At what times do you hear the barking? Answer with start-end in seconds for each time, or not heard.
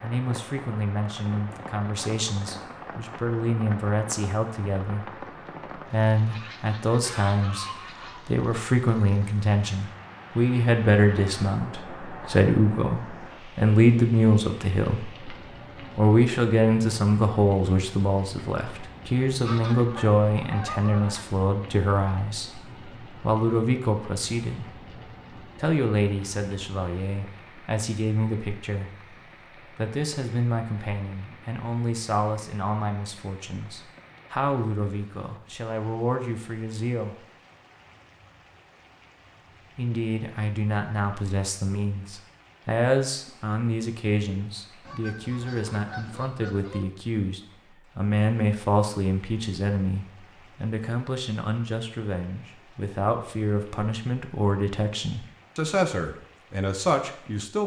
not heard.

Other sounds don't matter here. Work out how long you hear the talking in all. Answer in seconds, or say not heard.
55 s.